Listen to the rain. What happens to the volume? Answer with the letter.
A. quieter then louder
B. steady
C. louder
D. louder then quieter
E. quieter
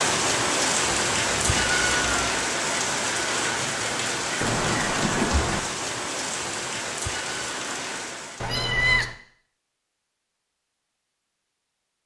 E.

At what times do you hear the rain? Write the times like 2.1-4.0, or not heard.
0.0-8.6.